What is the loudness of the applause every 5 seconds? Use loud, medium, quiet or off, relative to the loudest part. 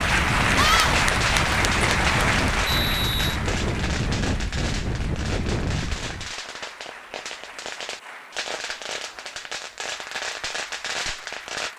loud, quiet, quiet.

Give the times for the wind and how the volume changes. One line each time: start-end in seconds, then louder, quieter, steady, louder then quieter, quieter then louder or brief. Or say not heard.
0.0-6.3 steady.